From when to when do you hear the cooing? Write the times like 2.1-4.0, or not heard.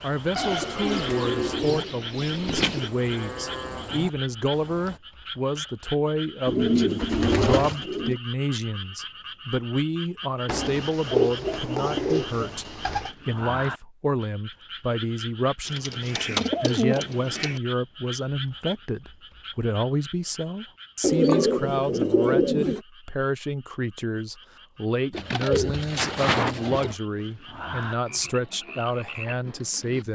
0.3-2.9, 6.5-8.2, 10.4-13.1, 15.7-17.6, 21.0-22.8, 25.1-26.9.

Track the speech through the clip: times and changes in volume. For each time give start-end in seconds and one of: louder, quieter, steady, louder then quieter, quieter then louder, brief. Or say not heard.
0.0-30.1 steady.